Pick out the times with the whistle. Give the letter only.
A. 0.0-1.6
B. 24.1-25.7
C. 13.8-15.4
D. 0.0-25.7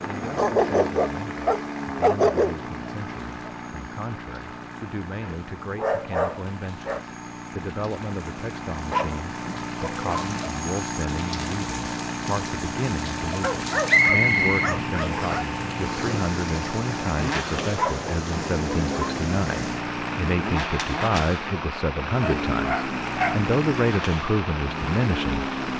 C.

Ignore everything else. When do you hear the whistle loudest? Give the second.
14 s.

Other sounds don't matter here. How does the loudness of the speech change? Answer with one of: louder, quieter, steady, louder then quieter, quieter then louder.
louder.